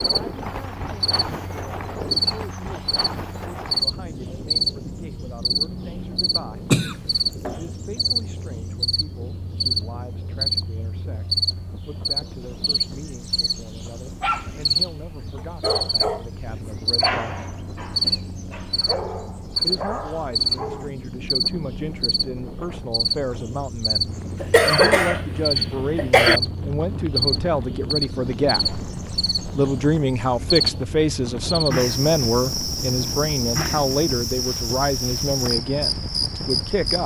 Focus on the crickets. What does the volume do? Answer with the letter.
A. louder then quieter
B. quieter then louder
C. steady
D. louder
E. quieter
C.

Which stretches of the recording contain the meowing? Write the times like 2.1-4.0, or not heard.
not heard.